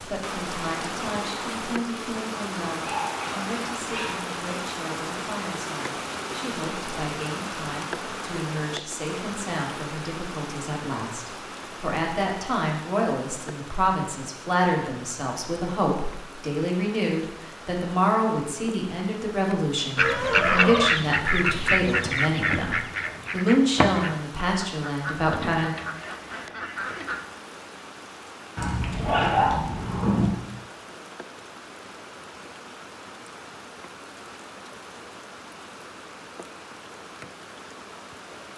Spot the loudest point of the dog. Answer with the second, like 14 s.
29 s.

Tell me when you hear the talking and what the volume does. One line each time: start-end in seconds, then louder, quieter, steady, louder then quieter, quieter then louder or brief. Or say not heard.
0.0-25.8 louder.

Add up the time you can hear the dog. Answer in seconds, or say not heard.
3 s.